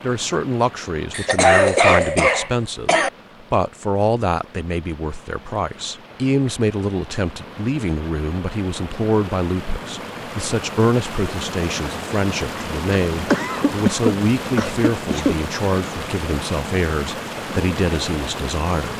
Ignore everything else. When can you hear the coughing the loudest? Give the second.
2 s.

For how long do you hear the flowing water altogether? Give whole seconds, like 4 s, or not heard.
19 s.